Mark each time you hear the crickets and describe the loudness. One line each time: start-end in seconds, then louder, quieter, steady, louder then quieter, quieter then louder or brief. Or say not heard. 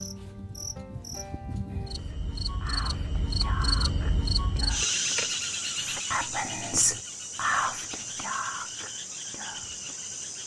0.0-10.4 louder then quieter.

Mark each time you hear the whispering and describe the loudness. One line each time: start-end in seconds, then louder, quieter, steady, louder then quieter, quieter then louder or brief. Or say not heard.
1.7-10.0 louder then quieter.